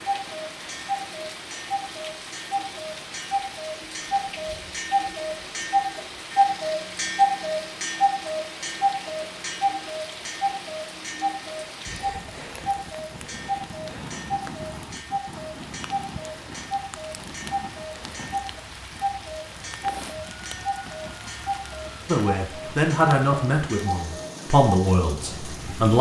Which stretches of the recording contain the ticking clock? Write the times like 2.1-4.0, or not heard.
0.0-25.9.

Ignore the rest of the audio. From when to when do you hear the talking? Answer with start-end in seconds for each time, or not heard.
22.1-25.9.